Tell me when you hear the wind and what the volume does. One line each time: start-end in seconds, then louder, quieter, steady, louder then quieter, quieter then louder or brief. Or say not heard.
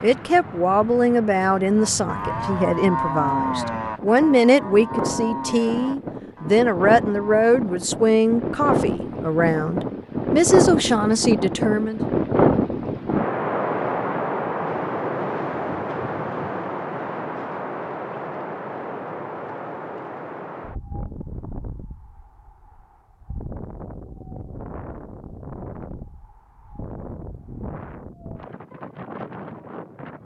0.0-30.1 louder then quieter.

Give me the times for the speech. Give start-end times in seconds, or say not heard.
0.0-12.0.